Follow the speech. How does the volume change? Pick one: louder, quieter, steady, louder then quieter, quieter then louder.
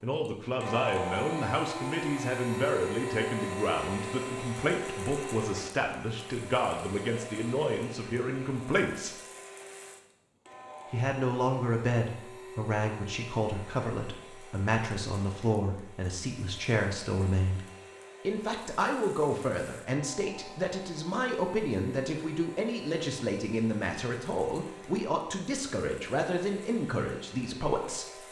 steady.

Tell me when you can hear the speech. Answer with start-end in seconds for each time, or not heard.
0.0-9.2, 10.9-17.6, 18.2-28.2.